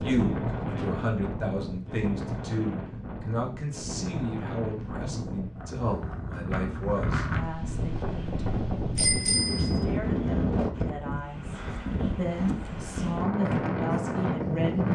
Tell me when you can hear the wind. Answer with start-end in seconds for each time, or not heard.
0.0-14.9.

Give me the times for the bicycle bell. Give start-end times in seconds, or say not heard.
8.9-9.8.